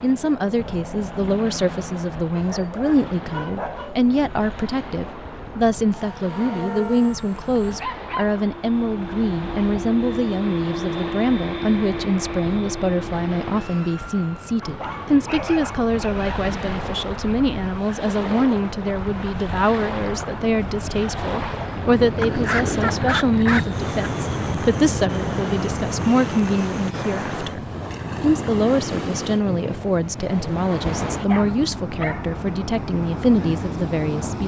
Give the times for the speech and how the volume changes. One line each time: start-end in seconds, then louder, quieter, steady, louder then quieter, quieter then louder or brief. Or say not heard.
0.0-34.4 steady.